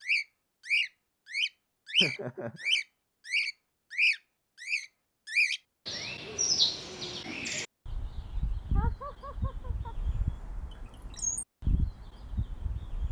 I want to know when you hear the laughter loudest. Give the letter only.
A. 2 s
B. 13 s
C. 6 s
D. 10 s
A.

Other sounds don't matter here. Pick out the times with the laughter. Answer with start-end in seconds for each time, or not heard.
2.0-2.8, 8.7-9.9.